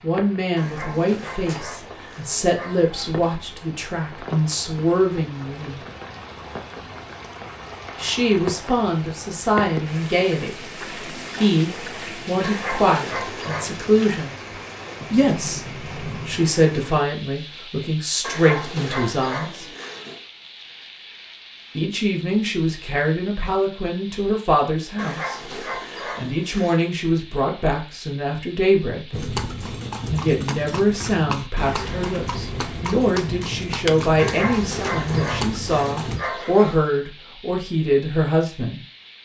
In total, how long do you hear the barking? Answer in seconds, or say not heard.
11 s.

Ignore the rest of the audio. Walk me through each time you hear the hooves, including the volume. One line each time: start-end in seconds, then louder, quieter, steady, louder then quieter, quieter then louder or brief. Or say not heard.
29.1-36.2 steady.